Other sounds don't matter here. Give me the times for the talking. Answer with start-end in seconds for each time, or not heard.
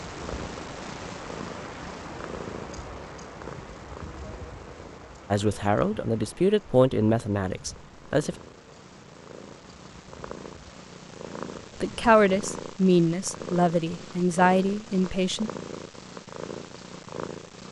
5.3-8.3, 11.8-15.5.